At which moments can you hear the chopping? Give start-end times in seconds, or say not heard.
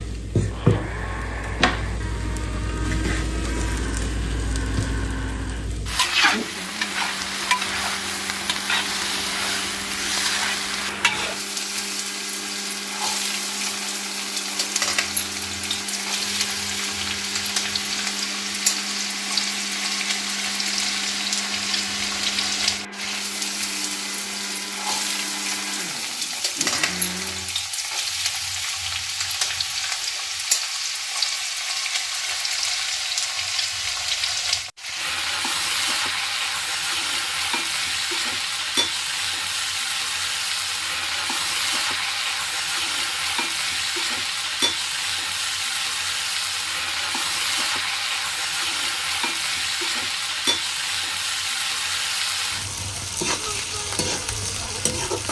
not heard.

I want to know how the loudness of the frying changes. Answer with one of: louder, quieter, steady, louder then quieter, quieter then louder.
steady.